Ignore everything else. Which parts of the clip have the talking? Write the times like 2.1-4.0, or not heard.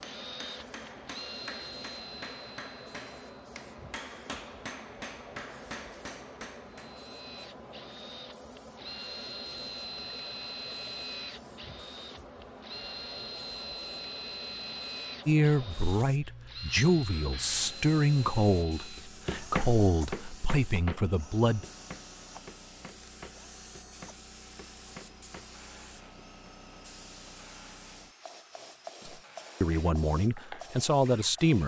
15.2-21.6, 29.1-31.6.